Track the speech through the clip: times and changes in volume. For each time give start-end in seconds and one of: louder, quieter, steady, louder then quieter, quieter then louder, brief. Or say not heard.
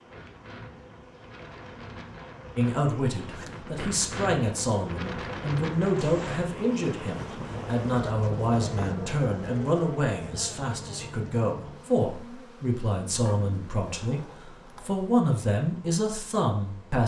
2.5-17.0 steady.